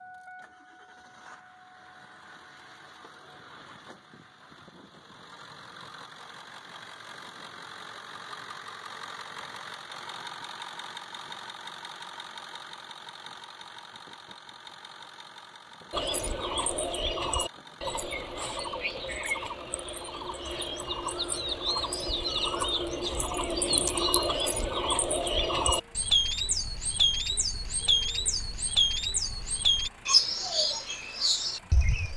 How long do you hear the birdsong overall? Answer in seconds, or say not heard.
16 s.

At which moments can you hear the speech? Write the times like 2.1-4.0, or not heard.
not heard.